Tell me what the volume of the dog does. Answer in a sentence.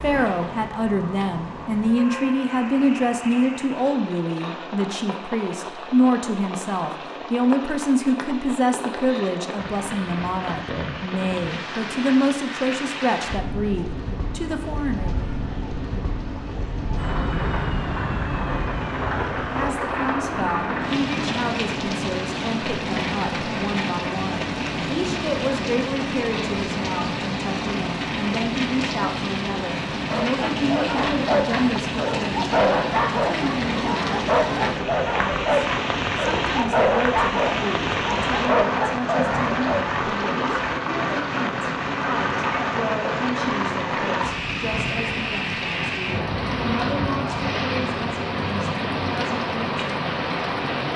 The loudness of the dog stays about the same.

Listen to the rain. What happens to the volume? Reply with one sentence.
The loudness of the rain goes up.